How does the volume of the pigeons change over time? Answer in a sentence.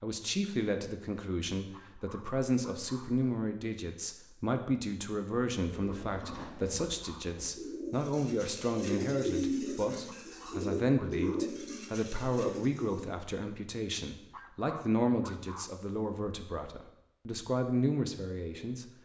The loudness of the pigeons goes up, then down.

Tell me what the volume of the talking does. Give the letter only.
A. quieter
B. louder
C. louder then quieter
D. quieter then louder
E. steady
E.